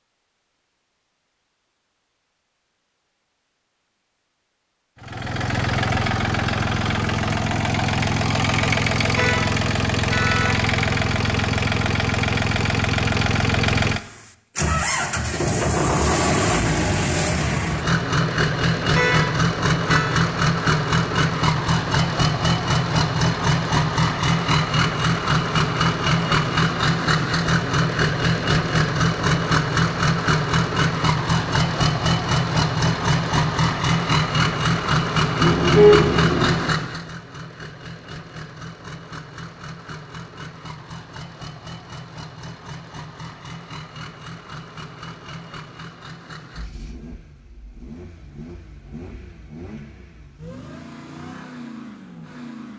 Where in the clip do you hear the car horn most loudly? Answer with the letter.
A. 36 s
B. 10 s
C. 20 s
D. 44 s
A.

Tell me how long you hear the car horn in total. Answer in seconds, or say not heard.
4 s.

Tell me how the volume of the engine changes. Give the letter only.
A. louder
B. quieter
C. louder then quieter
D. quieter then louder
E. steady
B.